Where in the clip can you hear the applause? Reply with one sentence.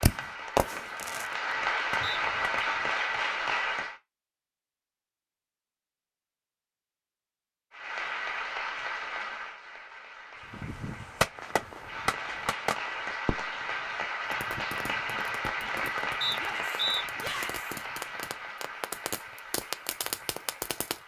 The applause can be heard from 0.0 to 4.0 s and from 7.7 to 21.0 s.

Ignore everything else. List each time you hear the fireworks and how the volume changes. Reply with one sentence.
The fireworks can be heard briefly from 0.0 to 2.8 s; and from 10.5 to 21.0 s, getting quieter then louder.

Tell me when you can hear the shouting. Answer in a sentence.
The shouting can be heard from 16.4 to 17.7 s.